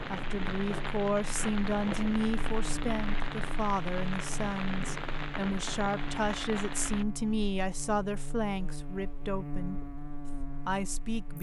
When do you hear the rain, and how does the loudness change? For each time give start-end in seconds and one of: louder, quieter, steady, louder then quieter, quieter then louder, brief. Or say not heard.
0.0-7.0 steady.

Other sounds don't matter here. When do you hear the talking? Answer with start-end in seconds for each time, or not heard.
0.1-9.8, 10.7-11.3.